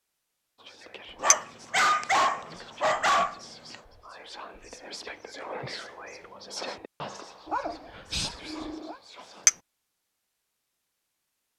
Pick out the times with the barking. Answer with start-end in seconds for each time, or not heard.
1.2-3.8, 7.5-8.9.